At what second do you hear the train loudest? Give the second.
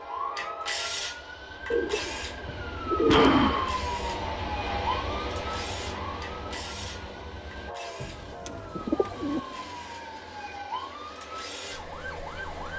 5 s.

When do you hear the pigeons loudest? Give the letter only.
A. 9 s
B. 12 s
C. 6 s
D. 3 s
D.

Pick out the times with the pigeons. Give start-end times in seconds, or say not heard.
1.7-3.7, 8.0-9.4.